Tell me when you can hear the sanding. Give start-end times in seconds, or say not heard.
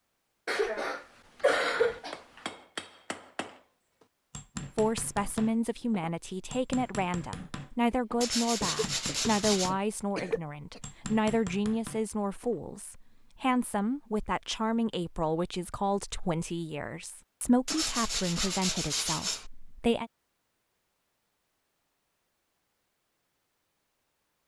8.2-9.7, 17.6-19.4.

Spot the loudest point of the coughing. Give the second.
2 s.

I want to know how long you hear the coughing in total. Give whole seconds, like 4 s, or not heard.
5 s.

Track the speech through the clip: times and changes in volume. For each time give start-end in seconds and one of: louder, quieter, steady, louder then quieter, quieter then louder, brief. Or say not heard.
4.8-20.1 steady.